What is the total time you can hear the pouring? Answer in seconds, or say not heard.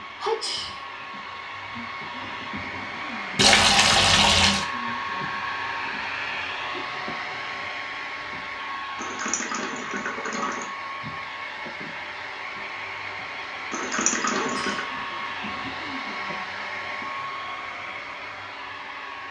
4 s.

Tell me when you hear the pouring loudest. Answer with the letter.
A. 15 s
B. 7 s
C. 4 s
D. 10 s
C.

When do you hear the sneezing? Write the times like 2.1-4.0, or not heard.
0.2-0.8, 14.3-14.9.